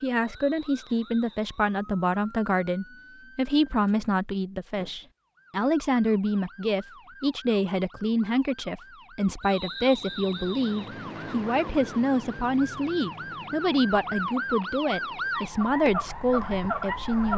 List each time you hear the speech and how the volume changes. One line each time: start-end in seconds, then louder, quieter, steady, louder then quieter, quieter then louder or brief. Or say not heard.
0.0-17.3 steady.